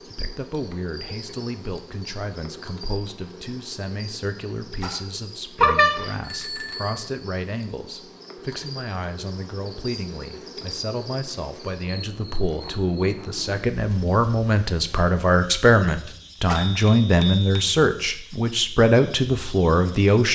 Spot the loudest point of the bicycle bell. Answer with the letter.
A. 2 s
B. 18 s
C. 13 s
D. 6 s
D.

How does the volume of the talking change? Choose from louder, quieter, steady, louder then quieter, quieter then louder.
louder.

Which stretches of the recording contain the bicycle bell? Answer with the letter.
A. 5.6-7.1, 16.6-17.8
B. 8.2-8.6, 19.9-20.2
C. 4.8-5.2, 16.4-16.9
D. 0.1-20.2
A.